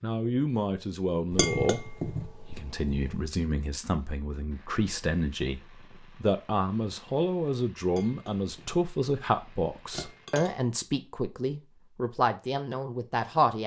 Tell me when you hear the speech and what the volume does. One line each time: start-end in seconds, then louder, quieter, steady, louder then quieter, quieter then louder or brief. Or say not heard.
0.0-13.6 steady.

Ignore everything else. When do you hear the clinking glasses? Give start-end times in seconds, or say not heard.
1.3-3.2, 8.0-8.8, 9.9-10.6.